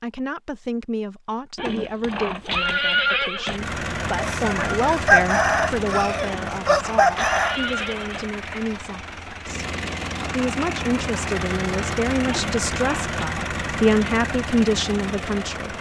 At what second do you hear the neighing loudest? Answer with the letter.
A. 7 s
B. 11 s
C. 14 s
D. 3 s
D.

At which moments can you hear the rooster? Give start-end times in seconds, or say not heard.
4.2-7.6.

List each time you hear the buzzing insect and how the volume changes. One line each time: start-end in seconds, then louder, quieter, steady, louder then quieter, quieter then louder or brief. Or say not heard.
not heard.